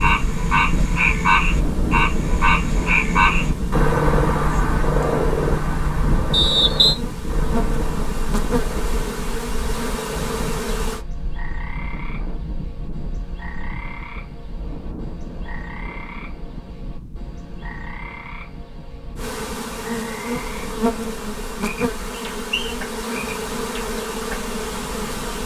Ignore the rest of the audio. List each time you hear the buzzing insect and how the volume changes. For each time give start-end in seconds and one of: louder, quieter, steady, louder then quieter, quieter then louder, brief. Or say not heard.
0.0-11.1 louder
19.1-25.4 steady.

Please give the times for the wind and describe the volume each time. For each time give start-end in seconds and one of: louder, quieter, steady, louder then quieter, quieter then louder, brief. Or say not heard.
0.0-25.4 quieter.